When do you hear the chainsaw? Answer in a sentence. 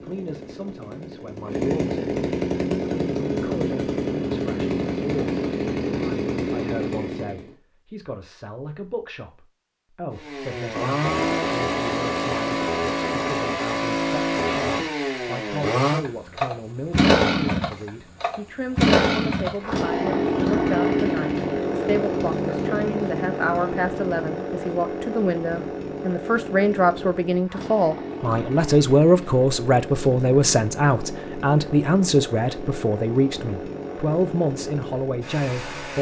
You can hear the chainsaw from 0.0 to 7.5 s and from 10.1 to 35.9 s.